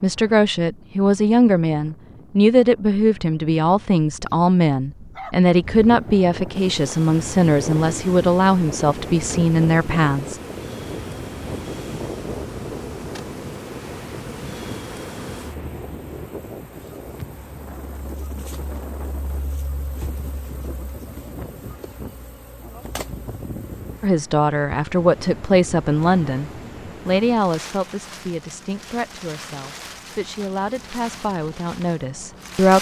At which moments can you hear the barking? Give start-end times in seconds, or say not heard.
4.7-5.3.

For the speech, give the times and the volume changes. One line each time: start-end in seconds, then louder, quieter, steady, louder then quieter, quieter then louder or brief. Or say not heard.
0.0-10.4 steady
24.0-32.7 quieter.